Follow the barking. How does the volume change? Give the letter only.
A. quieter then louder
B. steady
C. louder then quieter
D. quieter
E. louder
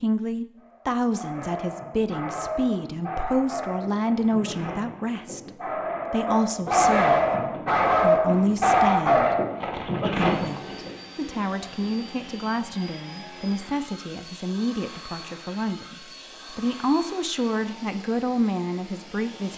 E.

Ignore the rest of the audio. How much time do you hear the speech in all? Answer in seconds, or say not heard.
17 s.